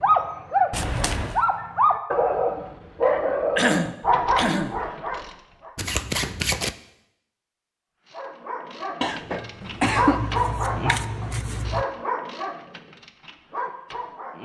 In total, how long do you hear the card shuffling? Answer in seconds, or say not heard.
4 s.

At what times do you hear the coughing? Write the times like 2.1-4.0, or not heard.
3.5-4.8, 9.0-10.2.